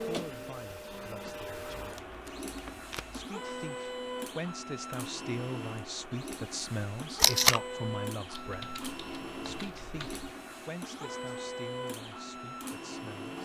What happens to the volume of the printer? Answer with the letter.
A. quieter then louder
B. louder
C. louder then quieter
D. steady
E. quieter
D.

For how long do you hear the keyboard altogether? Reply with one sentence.
The keyboard can be heard for 2 seconds in total.